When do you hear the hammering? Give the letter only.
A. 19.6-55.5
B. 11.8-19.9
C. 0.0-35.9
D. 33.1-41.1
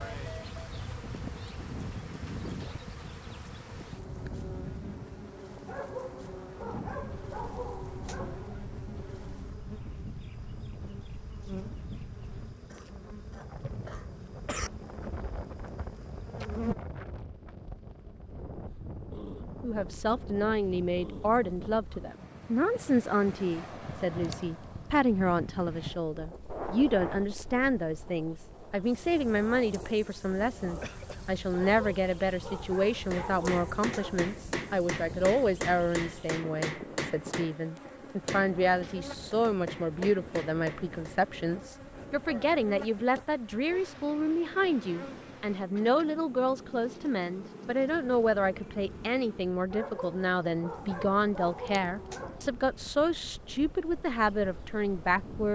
D.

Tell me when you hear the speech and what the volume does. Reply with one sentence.
The speech can be heard from 19.6 to 55.5 s, at a steady volume.